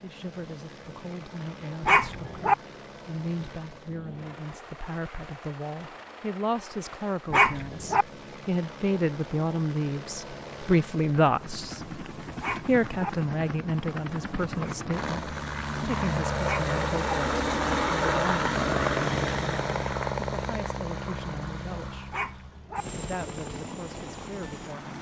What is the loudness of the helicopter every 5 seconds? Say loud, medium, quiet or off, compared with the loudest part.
quiet, quiet, medium, loud, medium.